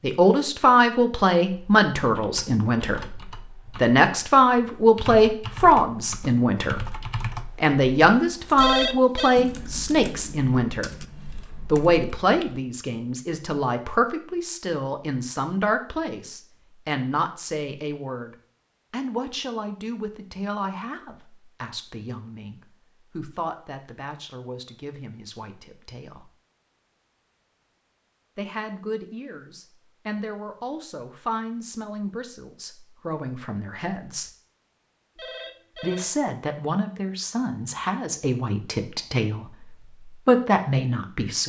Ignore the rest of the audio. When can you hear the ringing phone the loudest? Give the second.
9 s.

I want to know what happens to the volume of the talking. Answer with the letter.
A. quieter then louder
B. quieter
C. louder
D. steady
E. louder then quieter
A.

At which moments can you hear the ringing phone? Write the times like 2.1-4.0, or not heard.
8.6-9.3, 35.1-36.3.